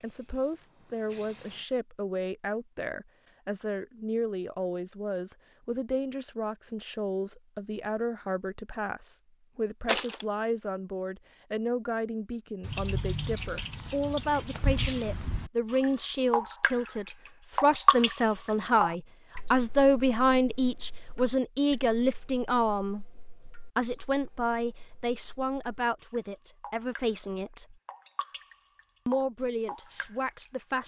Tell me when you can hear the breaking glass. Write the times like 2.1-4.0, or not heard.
9.8-10.2.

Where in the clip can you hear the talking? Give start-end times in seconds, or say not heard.
0.0-23.1, 23.8-27.8, 29.1-30.8.